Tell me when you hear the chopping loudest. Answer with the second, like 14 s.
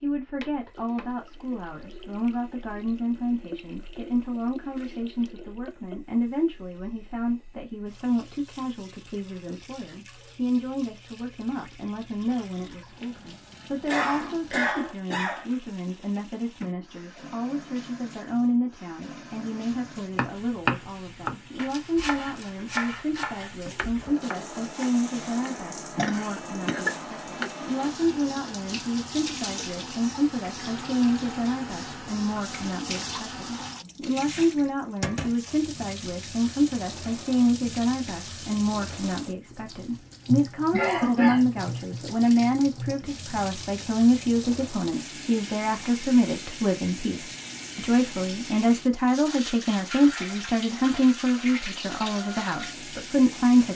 21 s.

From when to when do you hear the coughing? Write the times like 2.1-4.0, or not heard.
13.8-15.4, 25.9-26.9, 40.7-41.5.